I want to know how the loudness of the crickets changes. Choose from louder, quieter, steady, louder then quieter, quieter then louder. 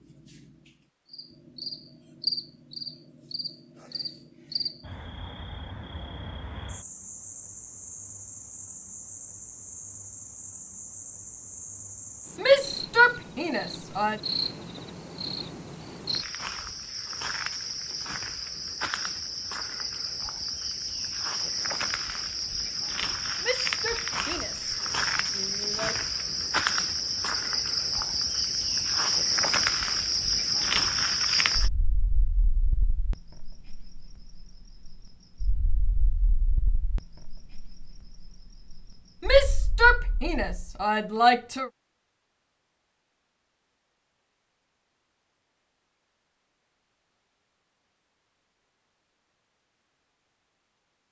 louder then quieter.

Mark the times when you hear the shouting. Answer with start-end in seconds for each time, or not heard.
12.3-14.2, 23.4-24.8, 25.4-25.9, 39.2-41.7.